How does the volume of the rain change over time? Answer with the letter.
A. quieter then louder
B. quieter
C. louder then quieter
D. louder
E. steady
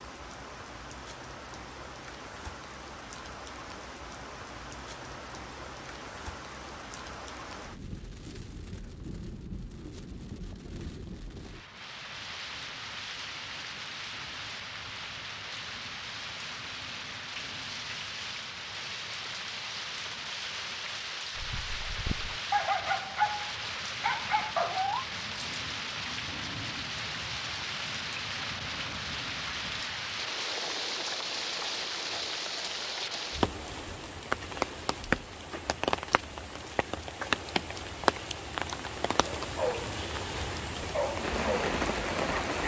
D.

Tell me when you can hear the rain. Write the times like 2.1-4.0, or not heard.
0.0-42.6.